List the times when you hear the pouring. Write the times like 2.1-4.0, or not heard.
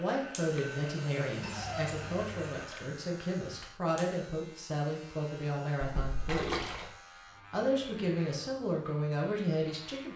1.4-2.5, 6.0-6.8.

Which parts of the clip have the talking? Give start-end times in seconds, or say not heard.
0.0-6.8, 7.5-10.1.